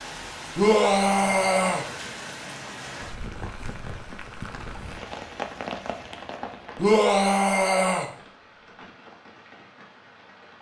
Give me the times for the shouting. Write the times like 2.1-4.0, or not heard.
0.6-1.9, 6.8-8.1.